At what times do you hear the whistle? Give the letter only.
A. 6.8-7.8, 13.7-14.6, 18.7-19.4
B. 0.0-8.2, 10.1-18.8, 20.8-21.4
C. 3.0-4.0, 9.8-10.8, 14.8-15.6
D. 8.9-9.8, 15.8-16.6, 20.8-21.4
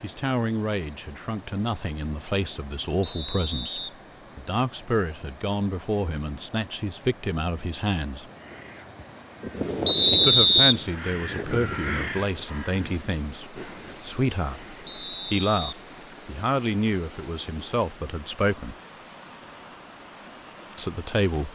C.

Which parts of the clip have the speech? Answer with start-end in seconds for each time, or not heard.
0.0-8.2, 10.1-18.8, 20.8-21.4.